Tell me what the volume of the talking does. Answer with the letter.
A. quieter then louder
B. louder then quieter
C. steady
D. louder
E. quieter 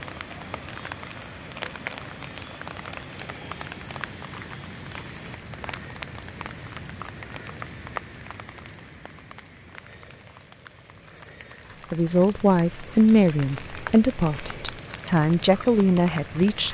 C.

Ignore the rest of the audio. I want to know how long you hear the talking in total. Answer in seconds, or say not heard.
5 s.